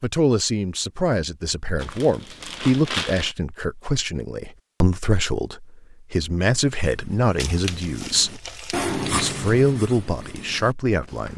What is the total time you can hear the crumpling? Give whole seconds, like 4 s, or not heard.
4 s.